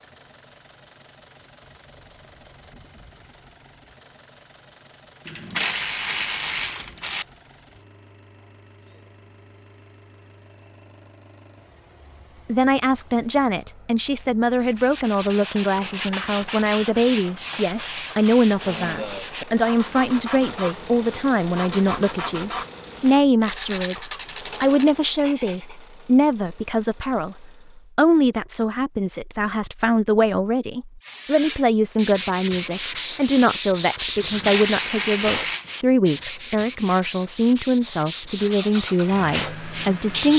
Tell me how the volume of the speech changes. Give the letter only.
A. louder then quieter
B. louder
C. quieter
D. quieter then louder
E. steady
E.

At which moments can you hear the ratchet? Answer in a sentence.
You can hear the ratchet from 5.2 to 7.2 s and from 34.1 to 35.6 s.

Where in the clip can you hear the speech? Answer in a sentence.
You can hear the speech from 12.4 to 40.3 s.